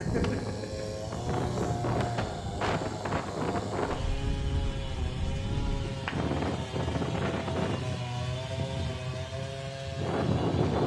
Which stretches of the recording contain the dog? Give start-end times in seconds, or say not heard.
not heard.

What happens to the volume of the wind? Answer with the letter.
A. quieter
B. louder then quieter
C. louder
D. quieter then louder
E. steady
E.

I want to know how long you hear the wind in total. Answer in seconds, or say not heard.
11 s.